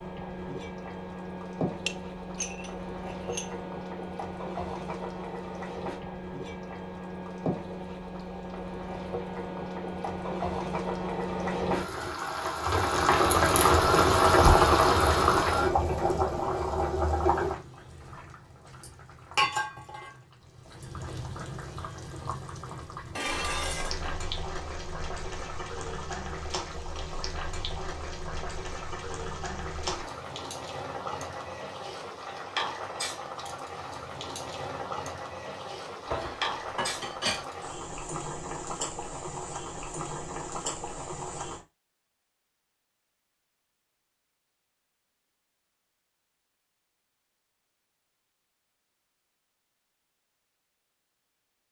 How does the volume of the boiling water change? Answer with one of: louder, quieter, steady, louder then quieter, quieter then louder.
louder then quieter.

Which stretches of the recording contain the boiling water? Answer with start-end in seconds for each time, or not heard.
0.0-41.6.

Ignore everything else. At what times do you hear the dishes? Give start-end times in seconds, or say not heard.
1.9-3.5, 23.1-24.1, 36.0-37.5.